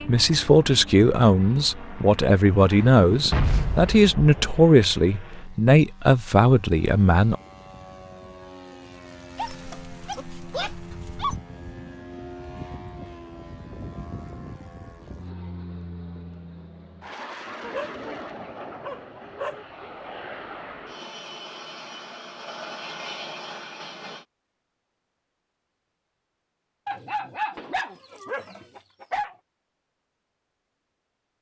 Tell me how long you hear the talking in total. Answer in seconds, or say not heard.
7 s.